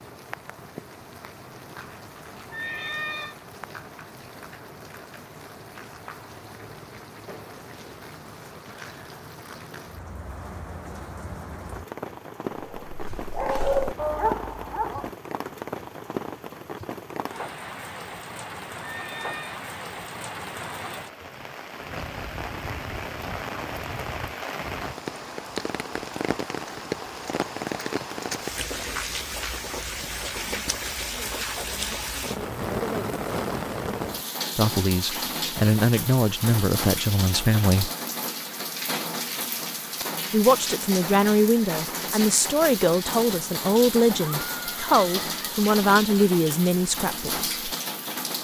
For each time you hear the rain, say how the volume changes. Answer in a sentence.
The rain can be heard from 0.0 to 48.3 s, getting louder.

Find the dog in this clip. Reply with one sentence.
You can hear the dog from 12.5 to 15.1 s.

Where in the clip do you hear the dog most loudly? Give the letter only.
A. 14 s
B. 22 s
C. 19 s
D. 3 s
A.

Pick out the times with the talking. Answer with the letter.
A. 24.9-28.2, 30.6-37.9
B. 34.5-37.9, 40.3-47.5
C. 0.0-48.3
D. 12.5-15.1
B.